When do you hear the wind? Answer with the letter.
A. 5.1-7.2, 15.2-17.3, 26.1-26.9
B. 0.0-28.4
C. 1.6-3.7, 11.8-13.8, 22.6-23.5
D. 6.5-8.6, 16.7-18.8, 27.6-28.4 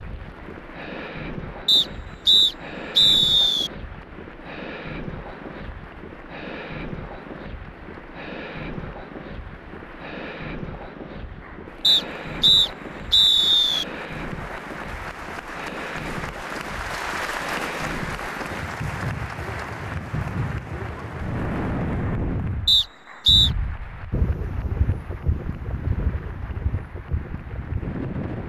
B.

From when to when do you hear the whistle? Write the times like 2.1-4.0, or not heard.
1.6-3.7, 11.8-13.8, 22.6-23.5.